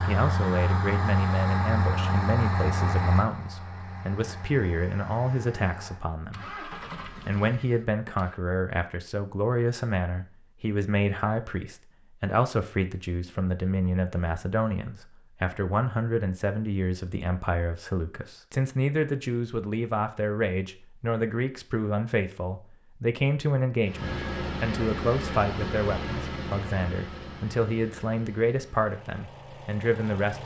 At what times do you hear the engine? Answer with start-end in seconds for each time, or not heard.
0.0-8.4, 23.9-30.4.